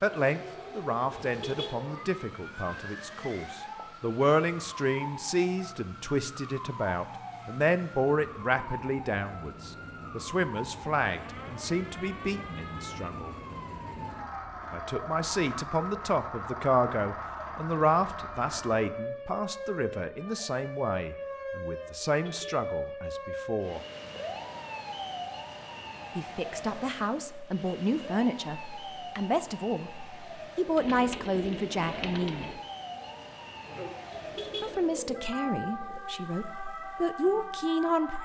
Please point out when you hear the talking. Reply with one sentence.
You can hear the talking from 0.0 to 13.3 s, from 14.7 to 23.8 s, from 26.1 to 32.5 s and from 34.6 to 38.2 s.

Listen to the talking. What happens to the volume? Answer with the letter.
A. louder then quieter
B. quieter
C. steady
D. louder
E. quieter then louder
C.